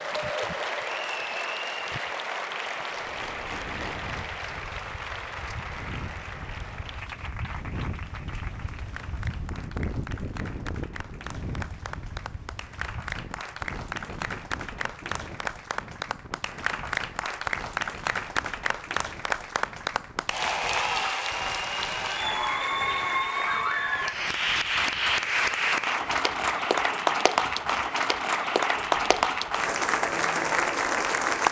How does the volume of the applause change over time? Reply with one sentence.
The loudness of the applause goes down, then up.